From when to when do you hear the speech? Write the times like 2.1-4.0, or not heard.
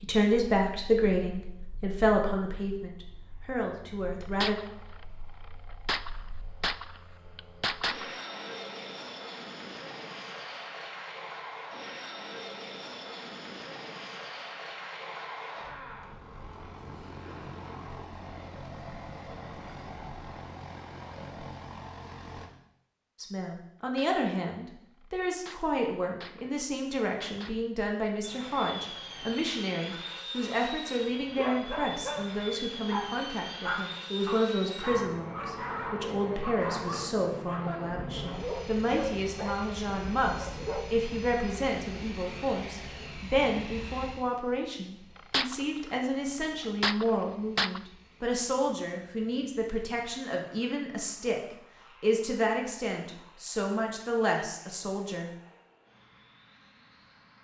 0.0-4.5, 23.2-55.3.